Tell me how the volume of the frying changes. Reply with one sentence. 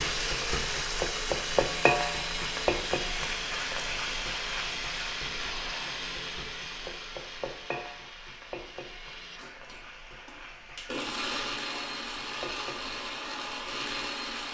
The loudness of the frying goes down.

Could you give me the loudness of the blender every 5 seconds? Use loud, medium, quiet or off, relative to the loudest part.
loud, medium, loud.